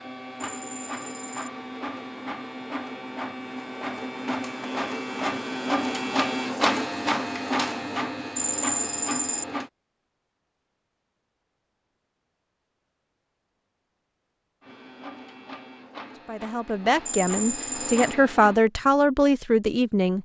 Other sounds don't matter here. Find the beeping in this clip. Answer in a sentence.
You can hear the beeping from 0.4 to 1.5 s, from 8.3 to 9.4 s and from 17.1 to 18.1 s.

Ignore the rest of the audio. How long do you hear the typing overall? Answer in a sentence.
The typing can't be heard in this clip.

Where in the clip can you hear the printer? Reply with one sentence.
You can hear the printer from 0.0 to 9.7 s and from 14.6 to 18.6 s.